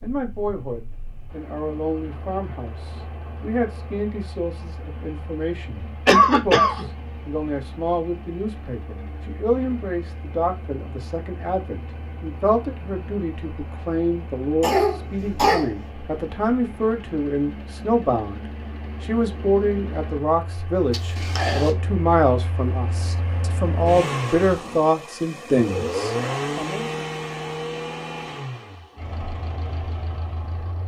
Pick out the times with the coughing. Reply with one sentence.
You can hear the coughing from 6.0 to 6.8 s, from 14.6 to 15.8 s and from 20.9 to 21.7 s.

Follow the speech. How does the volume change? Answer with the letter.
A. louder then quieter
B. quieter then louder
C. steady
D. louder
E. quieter
D.